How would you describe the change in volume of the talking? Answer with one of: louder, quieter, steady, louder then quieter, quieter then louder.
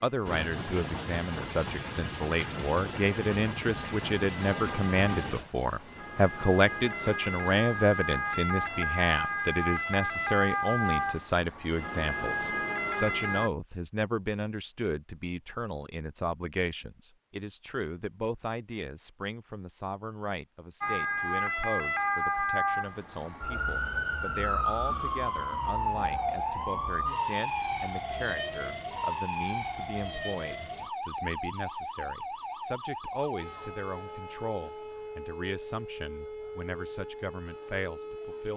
quieter.